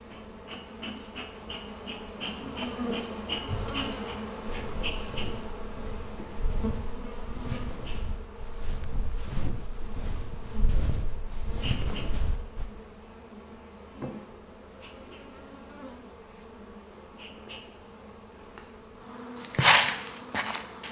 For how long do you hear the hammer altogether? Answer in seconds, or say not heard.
not heard.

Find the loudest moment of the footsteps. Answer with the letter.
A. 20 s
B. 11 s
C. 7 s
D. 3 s
A.